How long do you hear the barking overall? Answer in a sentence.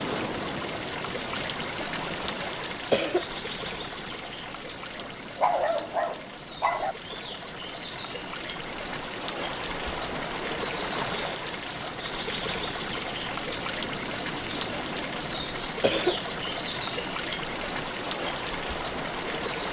The barking can be heard for 2 seconds in total.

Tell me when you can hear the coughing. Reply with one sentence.
You can hear the coughing from 2.4 to 3.4 s and from 15.3 to 16.3 s.